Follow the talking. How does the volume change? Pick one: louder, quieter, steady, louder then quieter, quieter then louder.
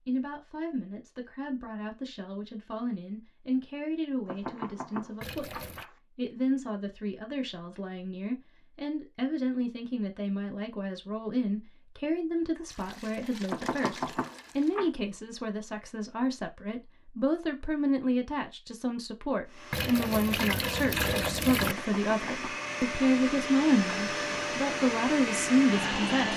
louder.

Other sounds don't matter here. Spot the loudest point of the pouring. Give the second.
21 s.